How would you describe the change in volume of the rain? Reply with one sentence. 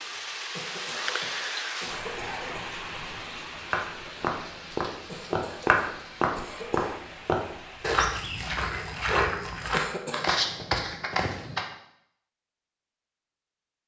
The loudness of the rain goes down.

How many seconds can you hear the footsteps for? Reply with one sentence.
You can hear the footsteps for 8 seconds altogether.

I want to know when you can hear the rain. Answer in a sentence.
You can hear the rain from 0.0 to 8.1 s.